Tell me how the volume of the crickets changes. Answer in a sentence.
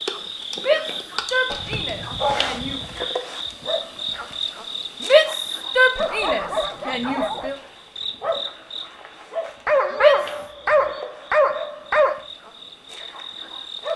The loudness of the crickets goes down.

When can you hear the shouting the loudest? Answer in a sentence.
The volume of the shouting peaks at 5 seconds.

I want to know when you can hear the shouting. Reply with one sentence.
You can hear the shouting from 0.6 to 2.8 s, from 5.0 to 7.5 s and from 9.9 to 10.4 s.